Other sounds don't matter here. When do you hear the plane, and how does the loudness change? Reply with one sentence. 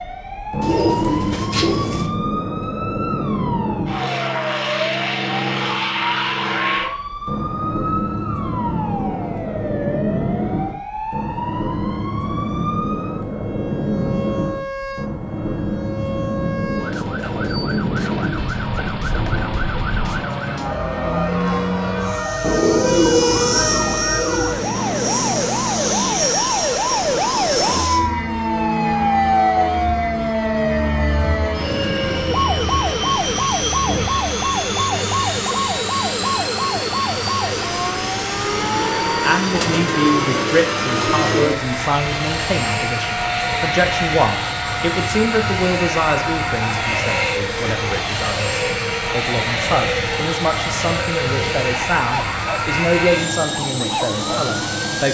The plane can be heard from 0.0 to 55.0 s, at a steady volume.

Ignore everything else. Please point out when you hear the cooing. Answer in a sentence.
The cooing can be heard from 0.6 to 2.1 s, from 22.4 to 24.4 s and from 39.5 to 41.5 s.